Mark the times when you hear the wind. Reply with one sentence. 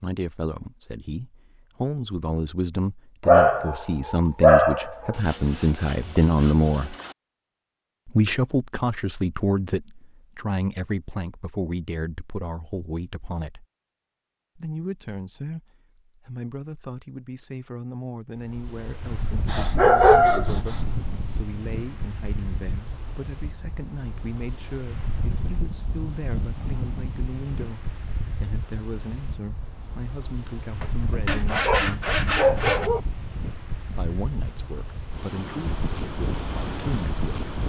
You can hear the wind from 18.4 to 37.6 s.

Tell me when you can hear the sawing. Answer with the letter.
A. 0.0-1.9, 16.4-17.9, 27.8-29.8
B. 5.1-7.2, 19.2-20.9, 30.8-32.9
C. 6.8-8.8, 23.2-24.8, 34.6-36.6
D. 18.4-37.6
B.